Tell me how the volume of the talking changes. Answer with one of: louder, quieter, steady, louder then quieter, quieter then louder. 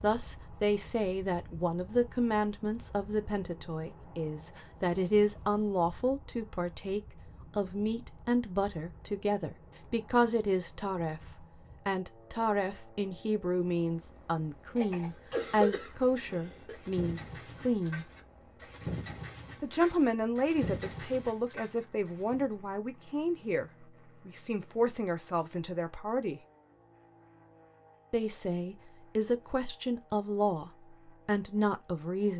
steady.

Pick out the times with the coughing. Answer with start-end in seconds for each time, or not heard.
14.8-16.8.